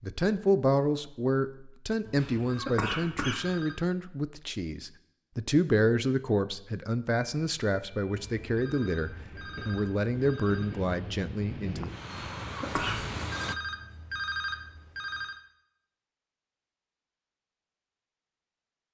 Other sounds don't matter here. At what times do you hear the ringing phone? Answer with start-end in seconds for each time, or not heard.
2.0-3.8, 8.1-10.8, 12.8-15.4.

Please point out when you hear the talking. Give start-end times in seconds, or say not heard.
0.0-11.9.